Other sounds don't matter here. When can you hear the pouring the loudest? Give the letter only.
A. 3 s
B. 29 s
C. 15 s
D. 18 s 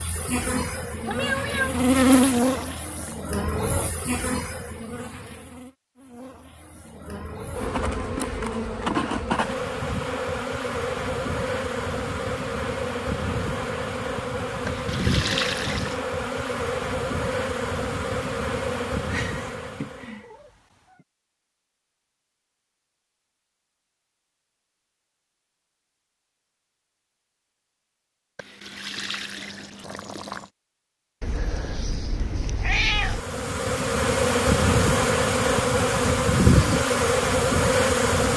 C.